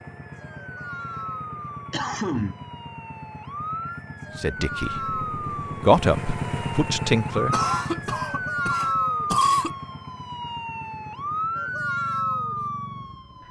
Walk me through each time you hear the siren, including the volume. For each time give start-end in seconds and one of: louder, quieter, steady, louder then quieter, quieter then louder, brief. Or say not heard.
0.0-13.4 louder.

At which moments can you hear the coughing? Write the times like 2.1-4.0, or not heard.
1.9-2.5, 7.5-9.7.